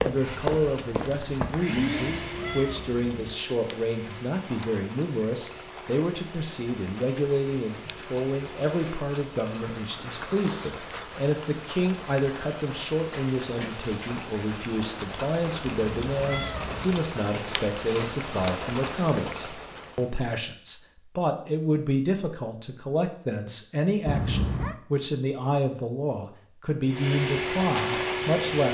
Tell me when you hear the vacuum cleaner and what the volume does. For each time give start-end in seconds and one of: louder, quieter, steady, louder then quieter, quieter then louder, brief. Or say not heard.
0.0-9.1 quieter
26.9-28.6 brief.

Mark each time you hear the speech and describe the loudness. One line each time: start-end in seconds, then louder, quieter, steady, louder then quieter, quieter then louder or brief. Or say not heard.
0.0-28.6 steady.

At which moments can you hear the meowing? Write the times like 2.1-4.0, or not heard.
1.8-3.4, 15.7-17.1, 24.1-24.8.